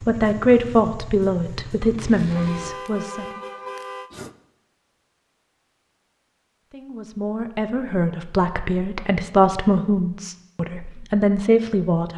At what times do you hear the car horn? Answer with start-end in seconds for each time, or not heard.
2.4-4.3.